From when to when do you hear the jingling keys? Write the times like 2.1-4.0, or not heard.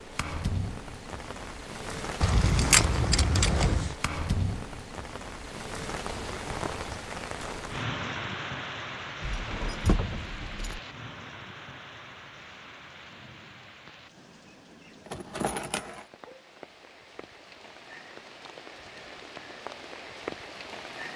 2.2-4.0, 9.2-10.8, 15.1-16.1.